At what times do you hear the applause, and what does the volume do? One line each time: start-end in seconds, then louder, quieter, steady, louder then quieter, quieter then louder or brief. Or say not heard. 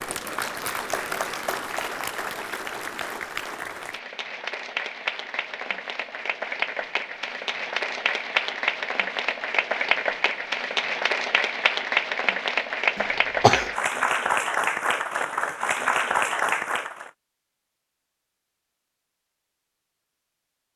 0.0-17.1 louder.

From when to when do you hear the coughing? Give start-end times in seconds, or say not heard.
12.9-13.8.